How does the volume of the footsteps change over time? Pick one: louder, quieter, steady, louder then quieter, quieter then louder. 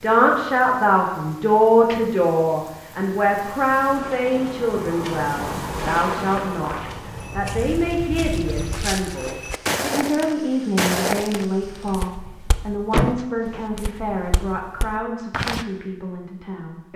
louder then quieter.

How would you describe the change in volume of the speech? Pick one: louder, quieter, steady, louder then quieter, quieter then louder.
quieter.